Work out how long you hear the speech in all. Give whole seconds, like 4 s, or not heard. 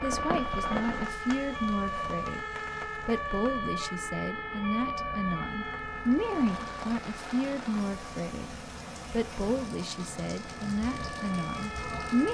12 s.